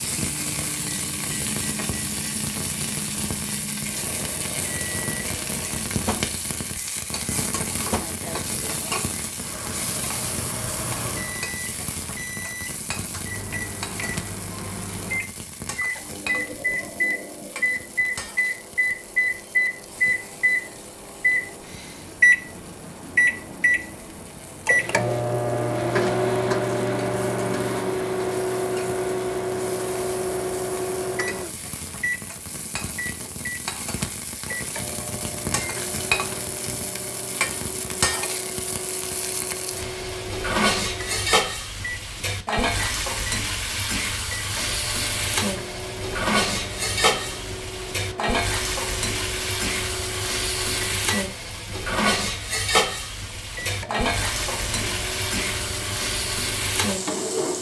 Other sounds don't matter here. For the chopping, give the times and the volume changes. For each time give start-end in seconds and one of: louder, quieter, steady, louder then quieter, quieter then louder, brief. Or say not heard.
not heard.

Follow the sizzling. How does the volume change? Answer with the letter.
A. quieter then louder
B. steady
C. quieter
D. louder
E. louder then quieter
A.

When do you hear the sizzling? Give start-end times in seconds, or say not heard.
0.0-57.5.